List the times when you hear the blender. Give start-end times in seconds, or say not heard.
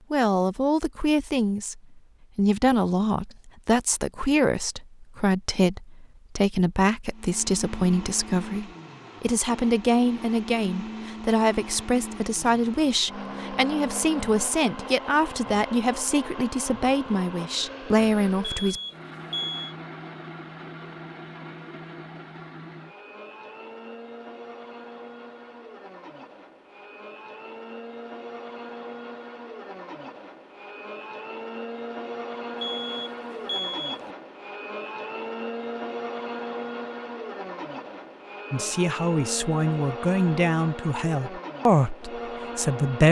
7.1-43.0.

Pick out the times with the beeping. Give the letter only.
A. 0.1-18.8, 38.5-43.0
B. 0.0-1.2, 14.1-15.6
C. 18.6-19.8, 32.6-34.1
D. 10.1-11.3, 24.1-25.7
C.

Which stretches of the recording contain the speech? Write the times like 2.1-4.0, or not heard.
0.1-18.8, 38.5-43.0.